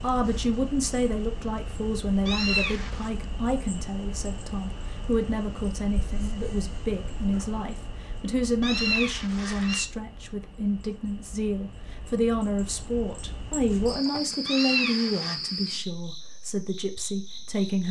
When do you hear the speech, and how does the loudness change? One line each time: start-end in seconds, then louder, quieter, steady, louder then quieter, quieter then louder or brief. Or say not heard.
0.0-17.8 steady.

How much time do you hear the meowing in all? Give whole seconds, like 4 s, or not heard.
3 s.